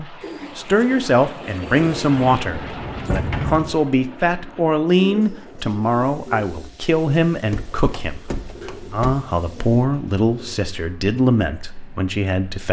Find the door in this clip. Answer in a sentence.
The door can be heard from 1.9 to 3.8 s and from 7.5 to 9.2 s.